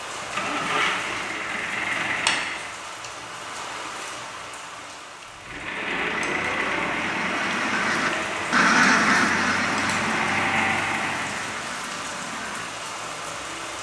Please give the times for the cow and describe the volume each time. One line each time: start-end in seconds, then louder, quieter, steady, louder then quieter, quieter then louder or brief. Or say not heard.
not heard.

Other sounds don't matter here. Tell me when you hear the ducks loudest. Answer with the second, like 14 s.
9 s.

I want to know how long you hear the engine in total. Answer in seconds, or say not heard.
9 s.